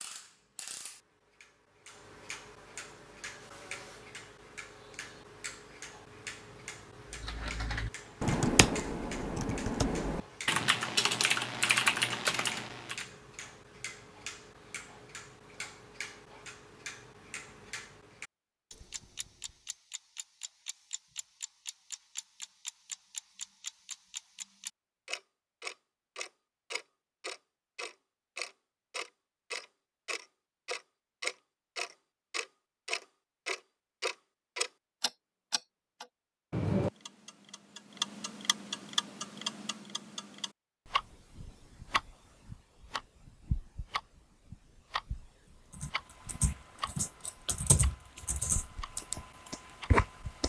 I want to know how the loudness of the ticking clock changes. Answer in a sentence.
The volume of the ticking clock goes up, then down.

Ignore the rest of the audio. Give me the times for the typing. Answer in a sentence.
The typing can be heard from 7.2 to 13.1 s and from 45.7 to 50.4 s.